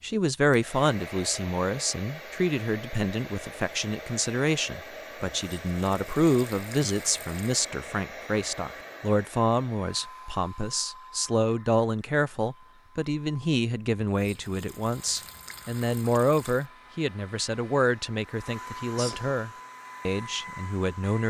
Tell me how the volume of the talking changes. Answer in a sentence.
The loudness of the talking stays about the same.